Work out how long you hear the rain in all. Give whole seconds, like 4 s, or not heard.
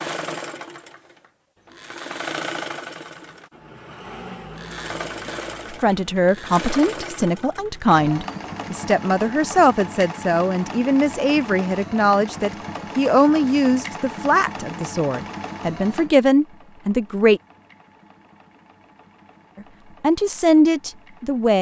not heard.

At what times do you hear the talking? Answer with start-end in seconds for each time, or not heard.
5.7-17.4, 20.0-21.5.